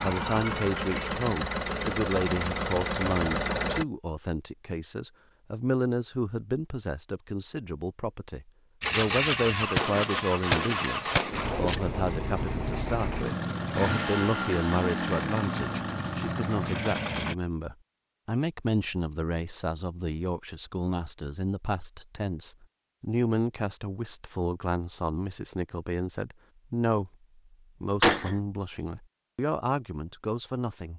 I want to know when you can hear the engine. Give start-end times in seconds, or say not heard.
0.0-3.9, 8.8-17.4.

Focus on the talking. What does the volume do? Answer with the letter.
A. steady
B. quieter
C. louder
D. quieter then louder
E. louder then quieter
A.